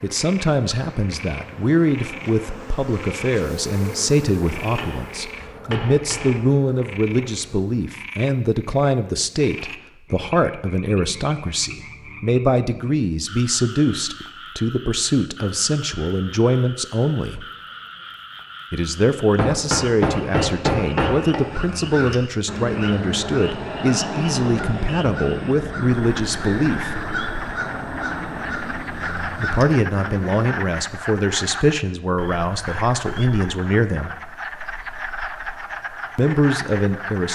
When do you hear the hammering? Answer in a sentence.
The hammering can be heard from 4.5 to 5.0 s, from 5.7 to 6.4 s and from 19.4 to 21.4 s.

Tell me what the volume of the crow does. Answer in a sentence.
The volume of the crow stays about the same.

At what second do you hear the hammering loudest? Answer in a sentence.
The volume of the hammering peaks at 21 seconds.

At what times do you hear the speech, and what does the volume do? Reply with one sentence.
You can hear the speech from 0.0 to 17.4 s, at a steady volume; from 18.7 to 27.1 s, at a steady volume; from 29.4 to 34.1 s, at a steady volume; and briefly from 36.1 to 37.3 s.